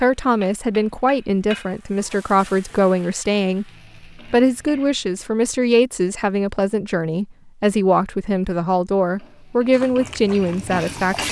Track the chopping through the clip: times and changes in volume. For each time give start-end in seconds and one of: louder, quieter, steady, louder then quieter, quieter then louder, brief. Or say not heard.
not heard.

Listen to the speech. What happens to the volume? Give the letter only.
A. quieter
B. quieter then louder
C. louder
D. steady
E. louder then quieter
D.